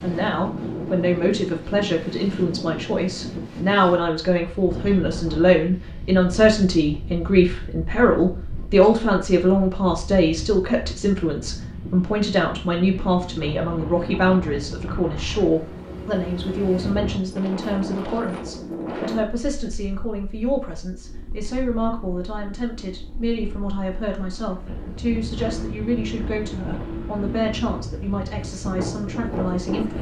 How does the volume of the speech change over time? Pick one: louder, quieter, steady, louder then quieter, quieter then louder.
quieter.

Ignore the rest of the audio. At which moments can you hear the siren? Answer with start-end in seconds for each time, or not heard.
not heard.